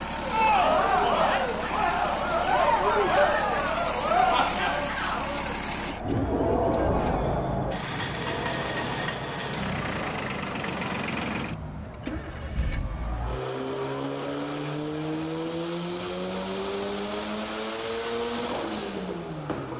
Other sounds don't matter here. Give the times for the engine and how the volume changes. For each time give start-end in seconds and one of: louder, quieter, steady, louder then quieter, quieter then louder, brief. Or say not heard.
0.0-19.7 steady.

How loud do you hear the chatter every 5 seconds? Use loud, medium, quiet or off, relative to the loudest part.
loud, medium, quiet, quiet.